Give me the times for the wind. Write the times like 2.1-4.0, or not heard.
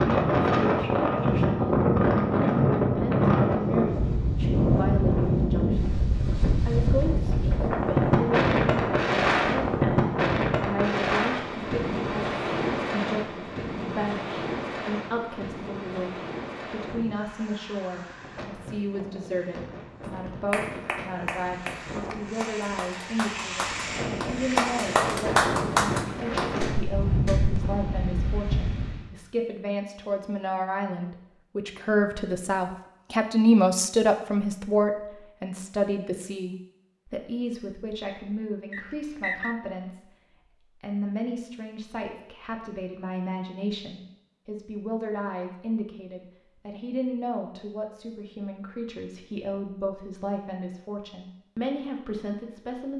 0.0-29.1.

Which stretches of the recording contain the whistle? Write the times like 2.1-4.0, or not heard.
38.7-39.5.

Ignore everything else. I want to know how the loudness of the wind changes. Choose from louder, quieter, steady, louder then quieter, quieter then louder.
quieter then louder.